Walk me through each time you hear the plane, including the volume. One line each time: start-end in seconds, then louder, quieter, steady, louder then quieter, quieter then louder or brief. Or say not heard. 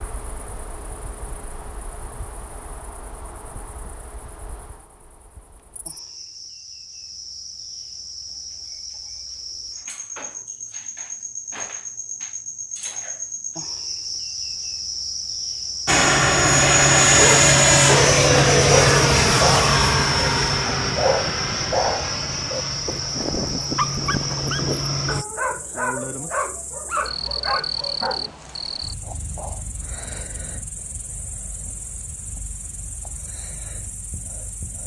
15.8-25.2 quieter.